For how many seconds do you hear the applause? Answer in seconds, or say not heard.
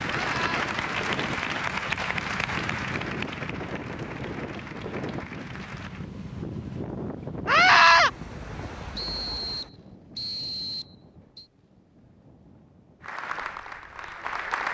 8 s.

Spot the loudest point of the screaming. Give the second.
8 s.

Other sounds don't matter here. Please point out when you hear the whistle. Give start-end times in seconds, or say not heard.
8.9-11.4.